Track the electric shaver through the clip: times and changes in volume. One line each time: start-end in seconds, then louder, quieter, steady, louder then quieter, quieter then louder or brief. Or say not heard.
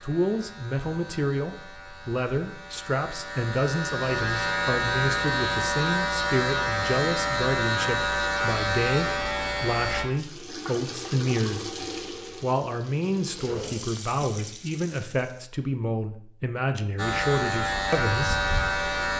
0.0-10.1 louder
16.9-19.1 brief.